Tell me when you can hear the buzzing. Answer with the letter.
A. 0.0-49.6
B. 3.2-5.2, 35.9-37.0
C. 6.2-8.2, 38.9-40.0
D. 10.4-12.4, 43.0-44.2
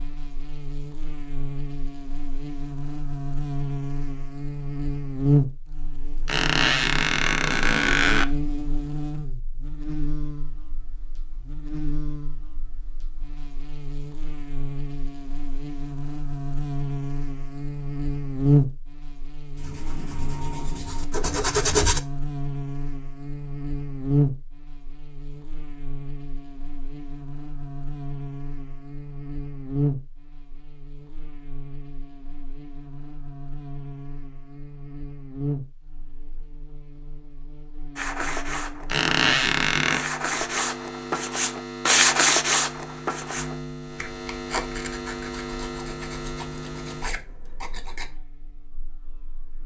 A.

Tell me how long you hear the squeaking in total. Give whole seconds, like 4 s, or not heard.
3 s.